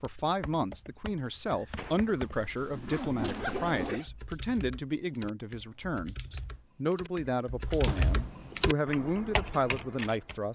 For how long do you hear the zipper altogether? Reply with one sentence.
The zipper can be heard for 2 seconds in total.